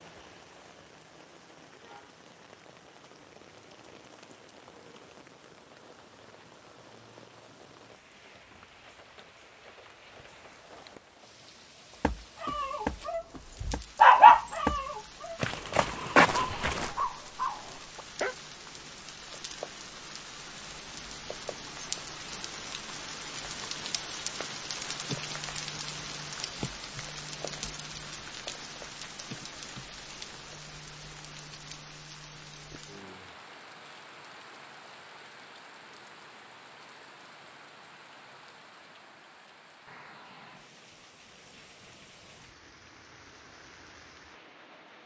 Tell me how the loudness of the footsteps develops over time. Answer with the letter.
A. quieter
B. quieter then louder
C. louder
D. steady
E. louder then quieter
B.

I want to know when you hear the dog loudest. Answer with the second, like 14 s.
14 s.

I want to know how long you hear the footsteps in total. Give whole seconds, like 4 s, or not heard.
5 s.